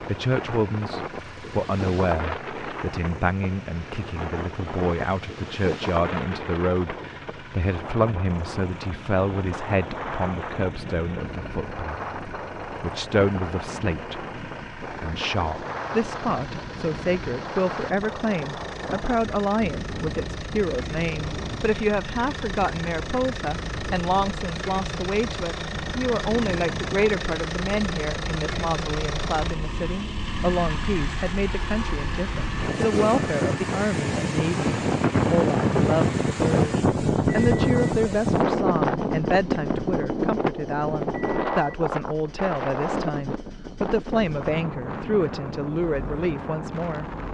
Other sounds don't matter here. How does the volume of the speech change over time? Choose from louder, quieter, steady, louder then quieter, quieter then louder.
steady.